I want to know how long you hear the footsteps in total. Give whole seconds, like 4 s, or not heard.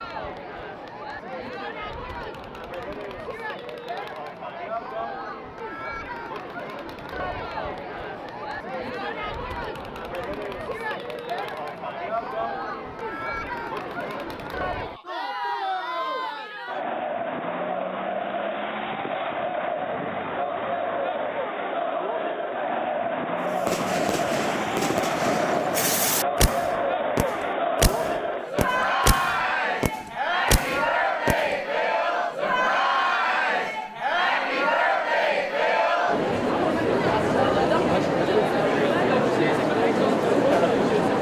not heard.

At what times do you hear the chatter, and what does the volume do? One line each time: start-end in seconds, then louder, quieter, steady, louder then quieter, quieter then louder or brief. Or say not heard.
0.0-41.1 louder.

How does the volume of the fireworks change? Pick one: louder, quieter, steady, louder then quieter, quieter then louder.
steady.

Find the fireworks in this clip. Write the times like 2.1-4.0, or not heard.
23.6-32.2.